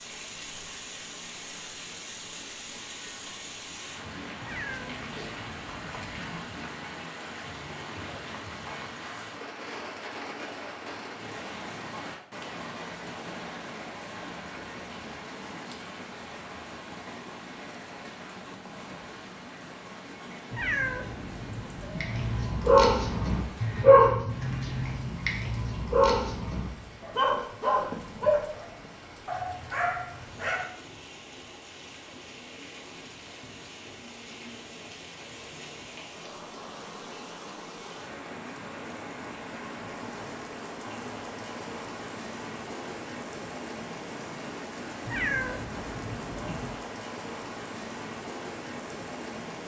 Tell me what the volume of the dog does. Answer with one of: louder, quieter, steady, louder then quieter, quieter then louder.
quieter.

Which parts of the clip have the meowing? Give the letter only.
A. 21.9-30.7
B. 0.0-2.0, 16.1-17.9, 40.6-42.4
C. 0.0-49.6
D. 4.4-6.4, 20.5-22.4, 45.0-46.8
D.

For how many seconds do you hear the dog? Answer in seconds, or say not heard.
9 s.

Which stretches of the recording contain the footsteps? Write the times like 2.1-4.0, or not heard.
not heard.